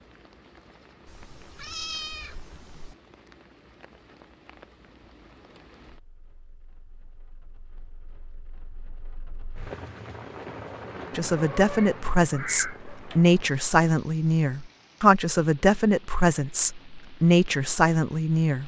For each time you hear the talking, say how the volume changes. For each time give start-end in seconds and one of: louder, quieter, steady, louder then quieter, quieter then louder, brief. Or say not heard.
11.2-18.6 steady.